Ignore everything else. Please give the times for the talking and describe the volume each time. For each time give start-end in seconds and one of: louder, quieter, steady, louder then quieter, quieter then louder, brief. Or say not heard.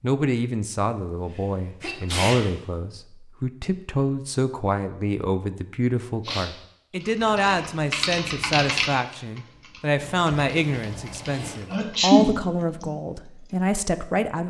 0.0-14.4 steady.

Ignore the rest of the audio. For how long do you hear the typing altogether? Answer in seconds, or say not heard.
7 s.